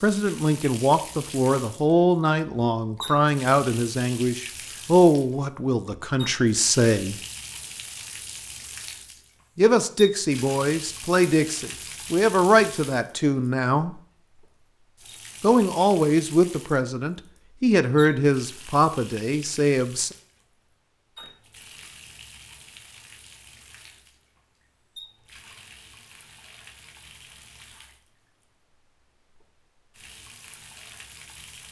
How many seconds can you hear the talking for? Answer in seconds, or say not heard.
16 s.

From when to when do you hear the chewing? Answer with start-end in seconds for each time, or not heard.
not heard.